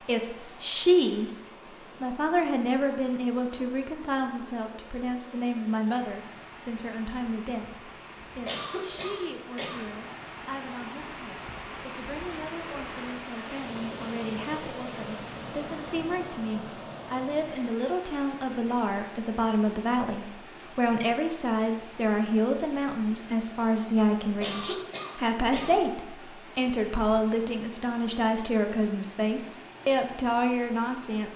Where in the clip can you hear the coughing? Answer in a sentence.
You can hear the coughing from 8.4 to 9.9 s and from 24.4 to 25.9 s.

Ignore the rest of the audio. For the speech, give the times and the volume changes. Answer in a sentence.
You can hear the speech briefly from 0.1 to 1.3 s; and from 2.0 to 31.3 s, getting quieter then louder.